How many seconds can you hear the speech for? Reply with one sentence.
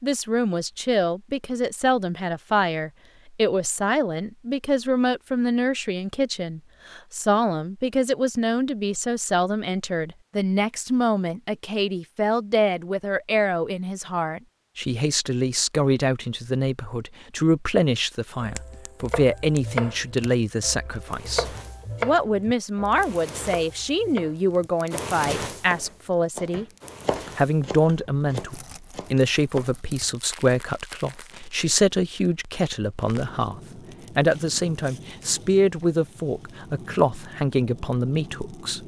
You can hear the speech for 38 seconds altogether.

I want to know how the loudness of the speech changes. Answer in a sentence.
The loudness of the speech stays about the same.